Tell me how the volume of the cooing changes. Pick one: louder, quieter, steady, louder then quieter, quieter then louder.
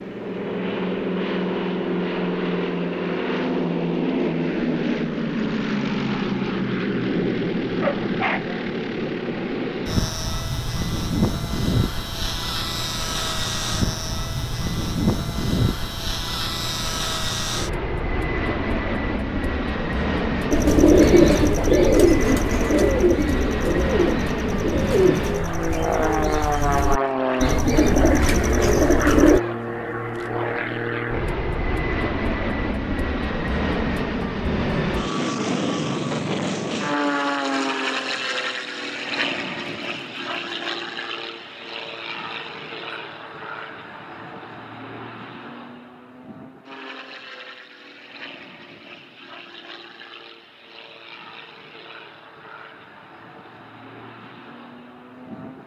quieter then louder.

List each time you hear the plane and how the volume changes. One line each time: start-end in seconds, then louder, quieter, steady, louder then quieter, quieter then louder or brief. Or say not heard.
0.0-55.6 quieter.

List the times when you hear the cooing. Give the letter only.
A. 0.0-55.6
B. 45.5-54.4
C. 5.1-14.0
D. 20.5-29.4
D.